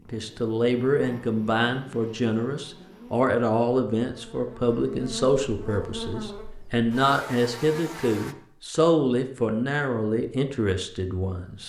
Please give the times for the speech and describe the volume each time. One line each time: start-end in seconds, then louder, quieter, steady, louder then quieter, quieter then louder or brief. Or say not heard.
0.1-11.6 steady.